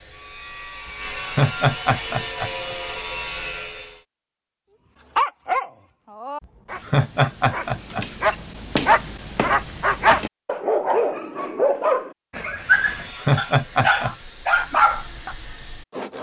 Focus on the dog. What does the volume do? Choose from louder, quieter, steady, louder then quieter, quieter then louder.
louder.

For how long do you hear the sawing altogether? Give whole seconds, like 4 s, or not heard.
8 s.